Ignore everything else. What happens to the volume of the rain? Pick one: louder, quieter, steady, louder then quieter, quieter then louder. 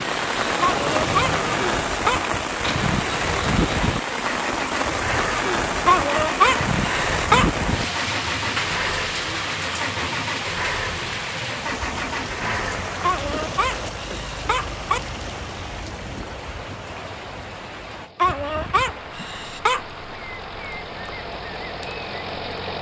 quieter.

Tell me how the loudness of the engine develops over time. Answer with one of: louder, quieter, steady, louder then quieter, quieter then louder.
quieter.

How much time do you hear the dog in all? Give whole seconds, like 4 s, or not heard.
7 s.